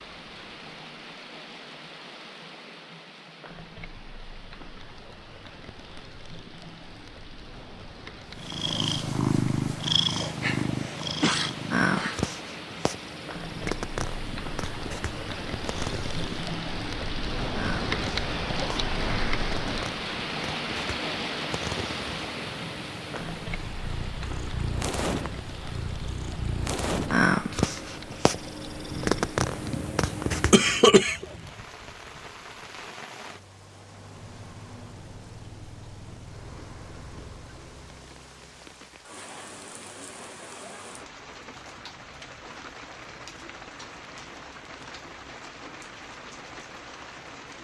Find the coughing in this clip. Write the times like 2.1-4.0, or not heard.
10.1-12.2, 30.5-31.2.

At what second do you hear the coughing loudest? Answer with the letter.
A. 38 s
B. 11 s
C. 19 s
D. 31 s
D.